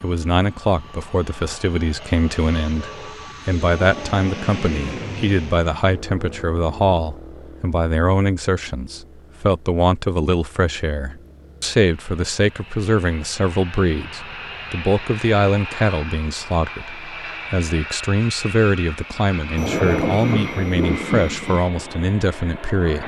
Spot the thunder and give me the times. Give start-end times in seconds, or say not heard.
19.6-21.6.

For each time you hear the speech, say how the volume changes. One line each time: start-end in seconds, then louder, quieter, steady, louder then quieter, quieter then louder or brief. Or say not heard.
0.0-23.0 steady.